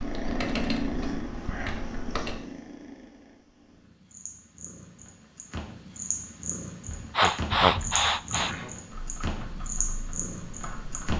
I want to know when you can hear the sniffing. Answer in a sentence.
You can hear the sniffing from 7.2 to 8.6 s.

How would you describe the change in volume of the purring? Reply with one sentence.
The volume of the purring goes down, then up.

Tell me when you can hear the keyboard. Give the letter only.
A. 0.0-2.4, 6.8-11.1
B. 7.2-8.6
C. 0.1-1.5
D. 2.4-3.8
A.